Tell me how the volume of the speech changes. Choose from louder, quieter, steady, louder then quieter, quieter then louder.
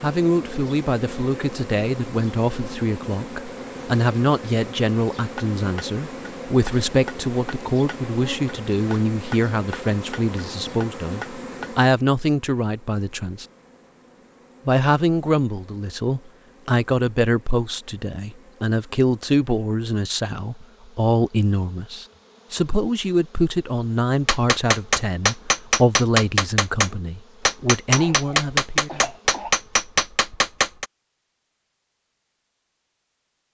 steady.